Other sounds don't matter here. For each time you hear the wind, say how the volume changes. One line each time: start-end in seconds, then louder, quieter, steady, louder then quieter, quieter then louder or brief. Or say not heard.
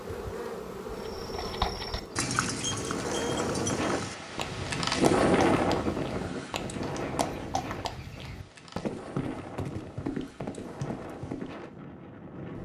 1.9-12.5 louder then quieter.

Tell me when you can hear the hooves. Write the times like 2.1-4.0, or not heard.
0.9-11.7.